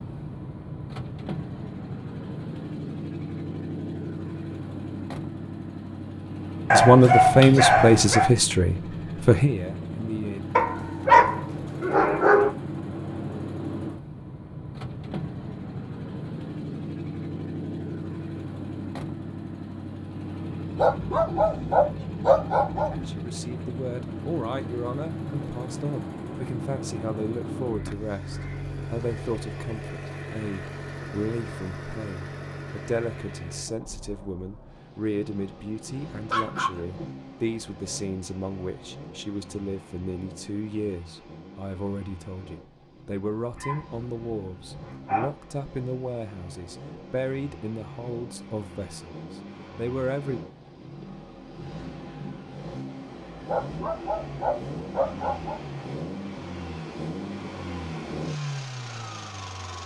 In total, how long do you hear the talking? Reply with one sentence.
The talking can be heard for 31 seconds in total.